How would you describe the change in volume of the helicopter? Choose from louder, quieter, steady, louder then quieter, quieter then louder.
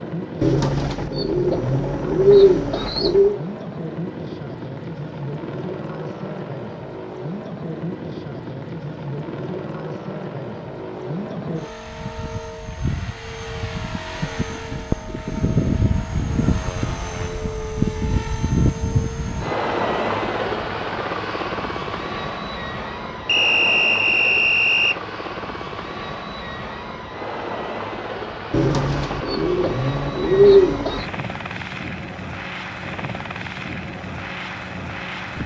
louder then quieter.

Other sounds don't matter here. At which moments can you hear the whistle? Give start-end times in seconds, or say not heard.
23.2-25.0.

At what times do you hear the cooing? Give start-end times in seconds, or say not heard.
0.4-3.4, 28.5-31.1.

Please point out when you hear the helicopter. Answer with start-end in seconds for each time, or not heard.
0.0-35.4.